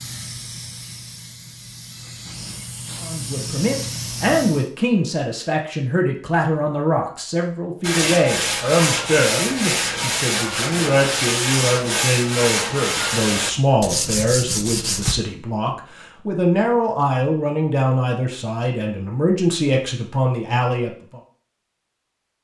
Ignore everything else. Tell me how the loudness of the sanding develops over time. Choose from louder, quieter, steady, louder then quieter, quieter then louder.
steady.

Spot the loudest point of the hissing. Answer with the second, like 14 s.
4 s.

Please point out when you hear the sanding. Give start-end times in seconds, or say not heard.
7.8-15.2.